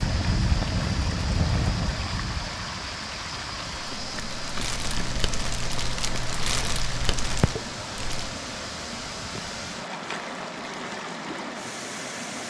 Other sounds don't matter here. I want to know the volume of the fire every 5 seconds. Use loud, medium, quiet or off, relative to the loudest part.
loud, loud, off.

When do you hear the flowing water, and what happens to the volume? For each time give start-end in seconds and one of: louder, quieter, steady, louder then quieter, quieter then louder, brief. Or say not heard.
0.0-12.4 steady.